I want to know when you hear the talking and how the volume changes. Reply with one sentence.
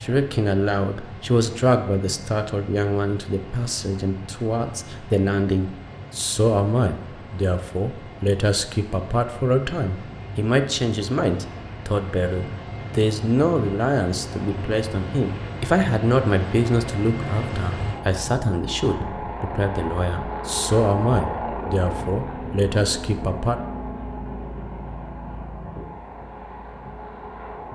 The talking can be heard from 0.0 to 23.6 s, at a steady volume.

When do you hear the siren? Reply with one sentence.
The siren can't be heard in this clip.